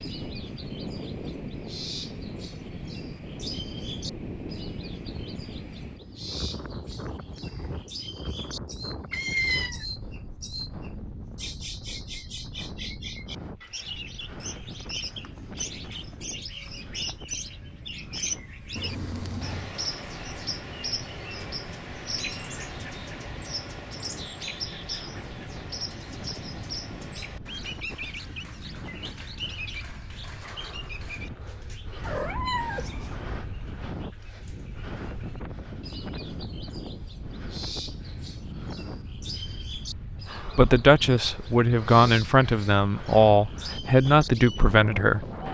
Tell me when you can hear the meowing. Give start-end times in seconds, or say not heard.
9.1-9.8, 18.8-19.8, 32.0-33.5.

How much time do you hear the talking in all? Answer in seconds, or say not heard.
5 s.